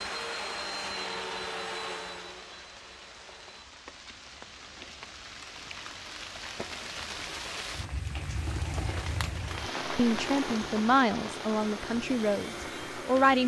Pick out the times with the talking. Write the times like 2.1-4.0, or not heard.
9.9-13.4.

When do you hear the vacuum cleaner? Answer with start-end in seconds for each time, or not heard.
0.0-3.6, 9.4-13.4.